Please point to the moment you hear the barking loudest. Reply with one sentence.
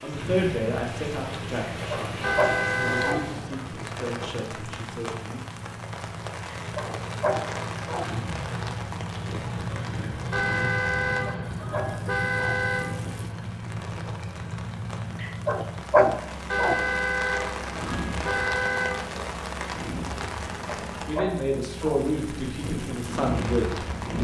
The volume of the barking peaks at 16 seconds.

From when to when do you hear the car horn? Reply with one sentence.
The car horn can be heard from 2.2 to 3.5 s, from 10.3 to 12.8 s and from 16.5 to 18.9 s.